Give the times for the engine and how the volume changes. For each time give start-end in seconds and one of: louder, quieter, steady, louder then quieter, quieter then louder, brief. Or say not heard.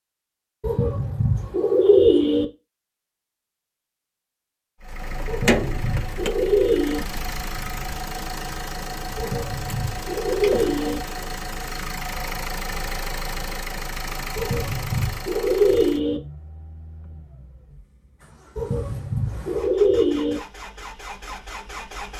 4.8-22.1 quieter.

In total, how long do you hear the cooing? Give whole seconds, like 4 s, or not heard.
9 s.